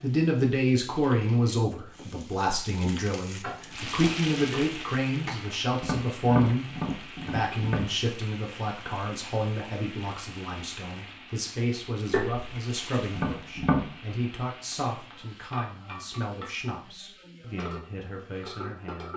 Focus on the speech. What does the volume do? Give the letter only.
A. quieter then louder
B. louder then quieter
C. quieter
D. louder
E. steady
C.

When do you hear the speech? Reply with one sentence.
The speech can be heard from 0.0 to 19.1 s.